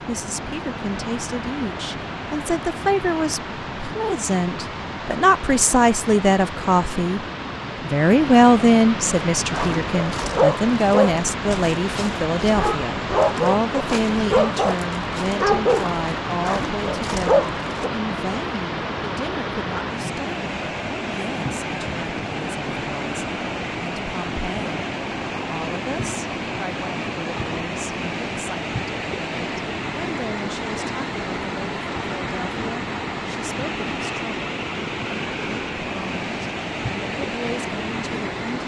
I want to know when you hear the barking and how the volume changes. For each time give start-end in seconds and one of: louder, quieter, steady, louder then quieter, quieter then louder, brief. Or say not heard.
9.3-17.9 quieter then louder.